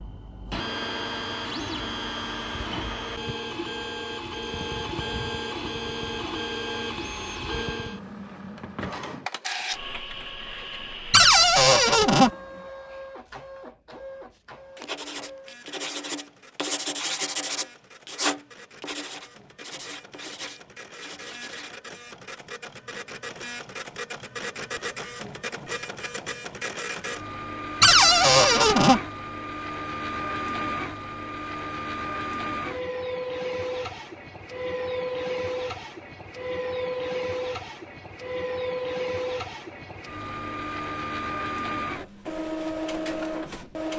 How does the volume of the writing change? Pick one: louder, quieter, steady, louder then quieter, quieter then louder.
louder then quieter.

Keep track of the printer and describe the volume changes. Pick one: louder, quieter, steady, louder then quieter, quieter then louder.
quieter then louder.